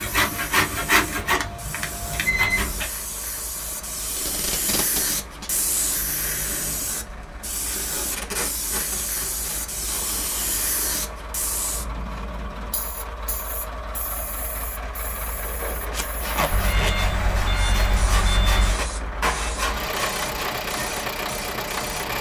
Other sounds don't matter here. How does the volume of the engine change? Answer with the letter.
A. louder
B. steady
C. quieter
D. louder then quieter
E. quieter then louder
A.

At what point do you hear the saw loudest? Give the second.
1 s.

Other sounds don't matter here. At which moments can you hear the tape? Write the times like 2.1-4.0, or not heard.
4.1-5.5, 7.7-10.2, 15.9-17.4.